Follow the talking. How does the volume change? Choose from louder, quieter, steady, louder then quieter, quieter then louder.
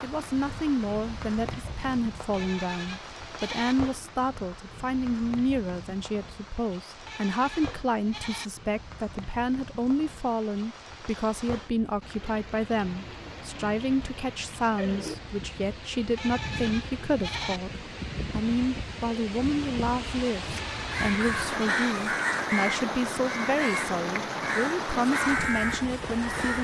steady.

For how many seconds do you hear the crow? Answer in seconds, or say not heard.
6 s.